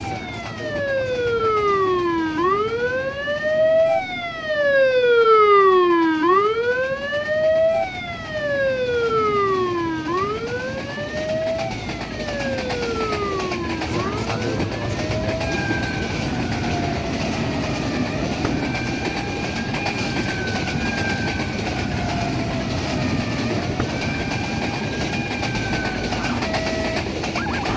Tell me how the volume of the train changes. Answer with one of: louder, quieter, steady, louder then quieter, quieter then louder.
louder.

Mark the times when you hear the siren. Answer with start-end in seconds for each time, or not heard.
0.0-27.6.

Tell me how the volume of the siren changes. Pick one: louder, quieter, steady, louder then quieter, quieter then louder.
quieter.